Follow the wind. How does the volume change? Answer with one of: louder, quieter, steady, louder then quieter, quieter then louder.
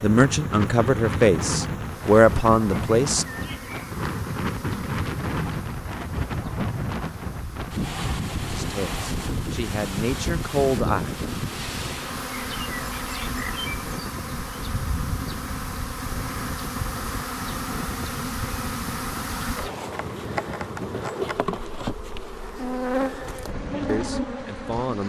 quieter.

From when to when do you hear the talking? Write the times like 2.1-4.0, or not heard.
0.0-3.2, 8.5-11.2, 23.9-25.0.